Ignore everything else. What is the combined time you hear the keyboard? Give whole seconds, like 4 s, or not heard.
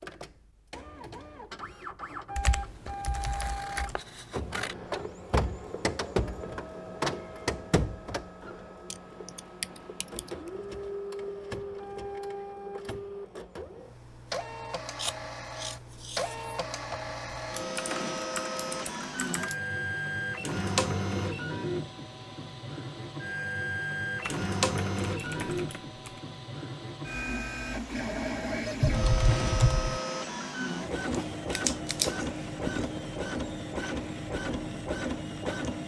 8 s.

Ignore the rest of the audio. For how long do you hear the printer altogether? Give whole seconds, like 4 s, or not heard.
36 s.